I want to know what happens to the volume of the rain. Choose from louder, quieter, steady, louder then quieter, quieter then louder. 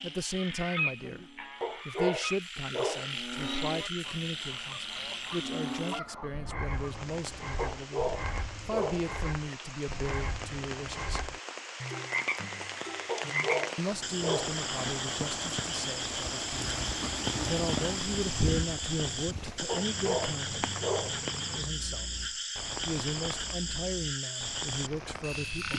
louder then quieter.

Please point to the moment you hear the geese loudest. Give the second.
1 s.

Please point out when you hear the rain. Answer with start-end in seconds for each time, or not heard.
6.5-25.7.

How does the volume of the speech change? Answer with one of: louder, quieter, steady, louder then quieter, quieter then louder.
steady.